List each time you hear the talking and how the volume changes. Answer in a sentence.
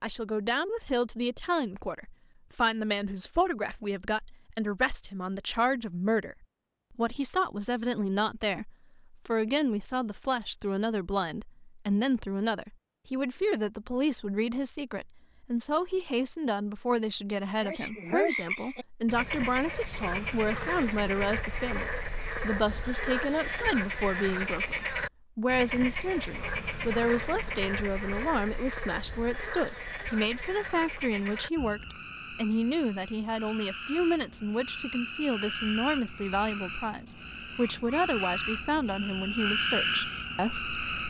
The talking can be heard from 0.0 to 40.8 s, at a steady volume.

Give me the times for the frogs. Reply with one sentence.
The frogs can be heard from 17.6 to 41.0 s.